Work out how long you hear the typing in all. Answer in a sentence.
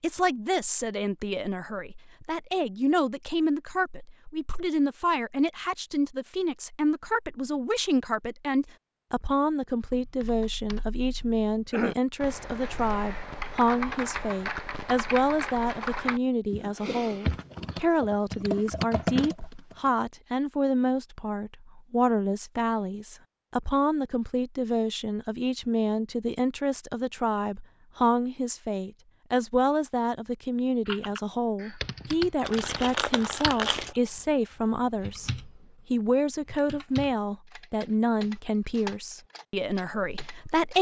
The typing can be heard for 20 seconds in total.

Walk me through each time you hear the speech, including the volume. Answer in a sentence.
You can hear the speech from 0.0 to 40.7 s, at a steady volume.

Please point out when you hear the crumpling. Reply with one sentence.
You can hear the crumpling from 32.4 to 34.0 s.